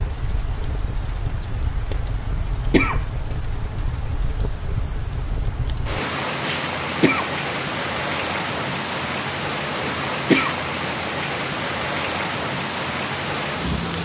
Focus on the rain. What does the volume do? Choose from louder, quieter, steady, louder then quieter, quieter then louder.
louder.